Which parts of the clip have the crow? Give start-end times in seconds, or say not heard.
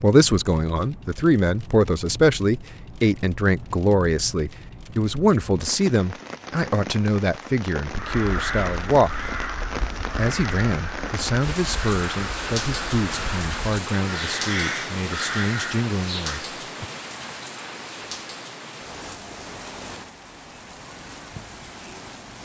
8.0-16.4.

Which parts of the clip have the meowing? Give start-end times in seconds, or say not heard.
not heard.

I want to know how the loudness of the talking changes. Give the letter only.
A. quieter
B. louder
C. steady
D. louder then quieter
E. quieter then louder
A.